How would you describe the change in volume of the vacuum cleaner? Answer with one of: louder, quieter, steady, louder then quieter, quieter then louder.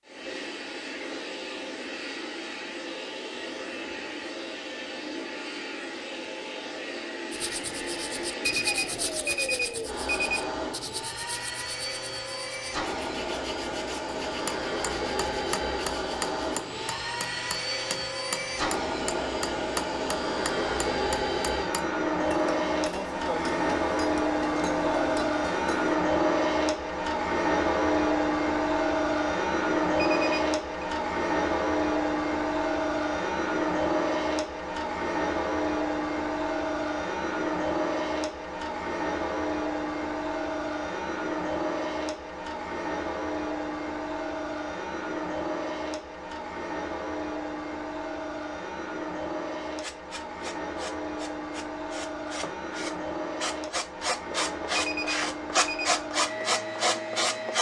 louder then quieter.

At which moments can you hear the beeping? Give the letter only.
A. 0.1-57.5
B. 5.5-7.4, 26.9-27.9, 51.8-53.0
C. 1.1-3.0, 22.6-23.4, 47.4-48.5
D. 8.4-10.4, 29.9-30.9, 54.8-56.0
D.